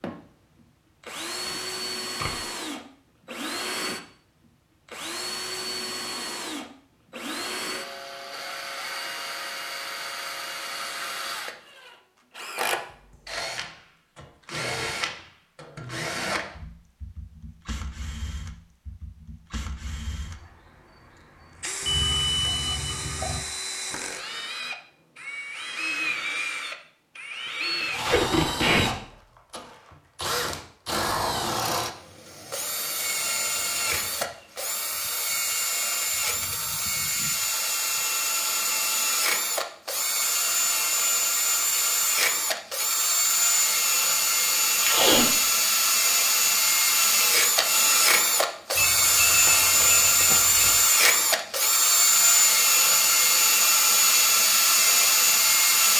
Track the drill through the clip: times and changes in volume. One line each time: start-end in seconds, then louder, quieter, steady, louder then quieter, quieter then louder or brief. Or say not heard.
0.0-55.9 louder.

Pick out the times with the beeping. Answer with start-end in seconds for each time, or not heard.
21.9-23.4, 48.8-50.8.